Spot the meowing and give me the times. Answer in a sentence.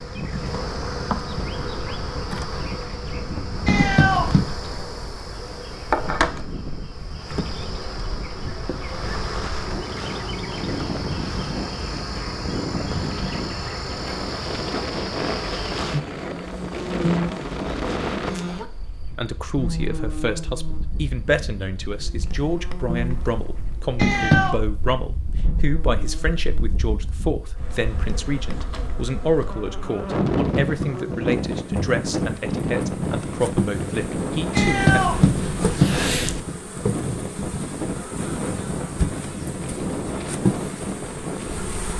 The meowing can be heard from 3.6 to 4.5 s, from 23.9 to 24.6 s and from 34.5 to 36.4 s.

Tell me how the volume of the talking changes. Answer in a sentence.
The loudness of the talking stays about the same.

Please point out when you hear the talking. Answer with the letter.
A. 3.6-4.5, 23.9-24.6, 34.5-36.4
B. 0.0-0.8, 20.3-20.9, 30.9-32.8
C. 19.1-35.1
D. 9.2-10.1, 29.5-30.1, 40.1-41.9
C.